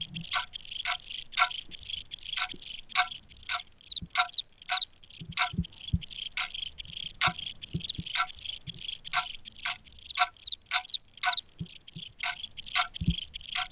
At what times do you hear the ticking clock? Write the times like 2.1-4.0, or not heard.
0.0-1.5, 2.4-13.6.